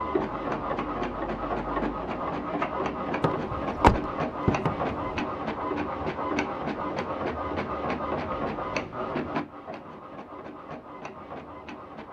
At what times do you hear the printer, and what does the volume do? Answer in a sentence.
The printer can be heard from 0.0 to 12.0 s, getting quieter.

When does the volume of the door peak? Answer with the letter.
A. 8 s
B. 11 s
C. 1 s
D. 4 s
D.